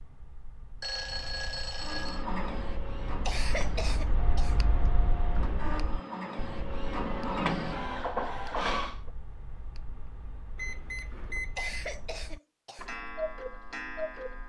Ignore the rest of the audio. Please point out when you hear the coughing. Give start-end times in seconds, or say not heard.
3.2-4.5, 11.6-12.8.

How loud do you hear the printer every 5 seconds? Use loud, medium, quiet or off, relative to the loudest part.
medium, loud, off.